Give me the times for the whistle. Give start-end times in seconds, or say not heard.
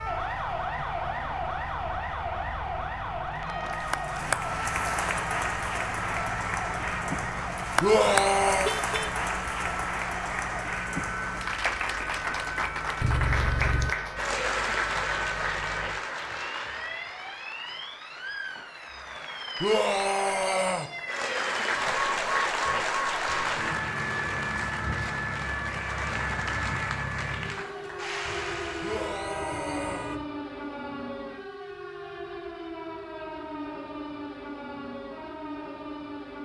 not heard.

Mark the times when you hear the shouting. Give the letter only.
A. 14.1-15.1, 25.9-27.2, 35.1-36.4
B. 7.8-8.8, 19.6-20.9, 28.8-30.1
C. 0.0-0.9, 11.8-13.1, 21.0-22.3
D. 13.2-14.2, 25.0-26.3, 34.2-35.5
B.